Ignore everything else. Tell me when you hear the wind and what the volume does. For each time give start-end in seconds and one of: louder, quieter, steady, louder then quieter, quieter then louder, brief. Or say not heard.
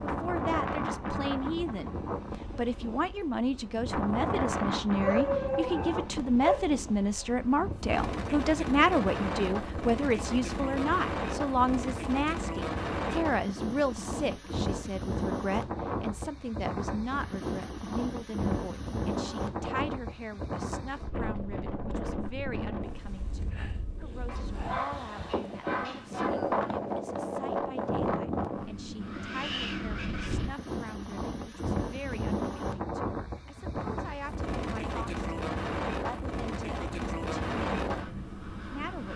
0.0-39.1 steady.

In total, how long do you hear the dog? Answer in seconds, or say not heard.
4 s.